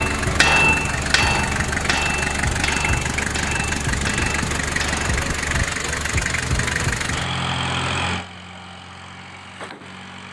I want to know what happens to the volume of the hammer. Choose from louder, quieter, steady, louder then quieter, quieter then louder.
quieter.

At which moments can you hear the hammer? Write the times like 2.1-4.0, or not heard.
0.0-5.2.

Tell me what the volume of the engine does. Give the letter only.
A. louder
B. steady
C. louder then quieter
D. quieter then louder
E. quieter
E.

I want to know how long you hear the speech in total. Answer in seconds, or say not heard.
not heard.